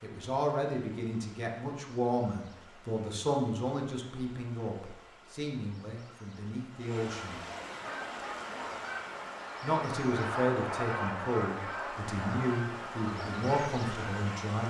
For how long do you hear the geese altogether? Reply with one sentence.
The geese can be heard for 7 seconds in total.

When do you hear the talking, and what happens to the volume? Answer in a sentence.
The talking can be heard from 0.0 to 7.4 s, getting quieter; and from 9.6 to 14.6 s, at a steady volume.